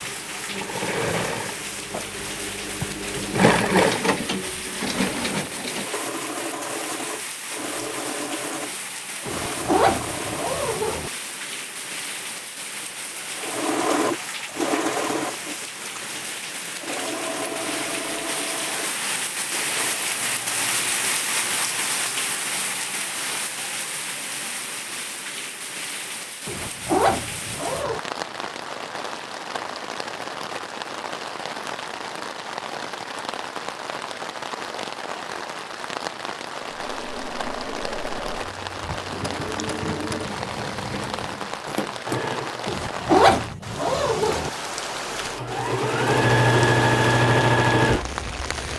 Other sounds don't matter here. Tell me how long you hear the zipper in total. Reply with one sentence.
You can hear the zipper for 5 seconds altogether.